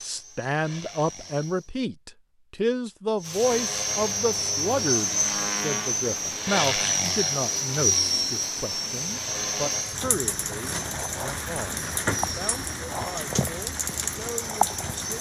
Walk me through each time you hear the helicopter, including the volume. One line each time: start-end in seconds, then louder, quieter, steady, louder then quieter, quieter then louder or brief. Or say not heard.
0.0-1.7 brief
3.2-15.1 quieter.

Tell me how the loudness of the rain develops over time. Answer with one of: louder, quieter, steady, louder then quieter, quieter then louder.
louder.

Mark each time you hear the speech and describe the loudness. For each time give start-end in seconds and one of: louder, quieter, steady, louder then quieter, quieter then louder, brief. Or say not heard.
0.0-15.1 quieter.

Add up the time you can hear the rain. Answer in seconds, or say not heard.
12 s.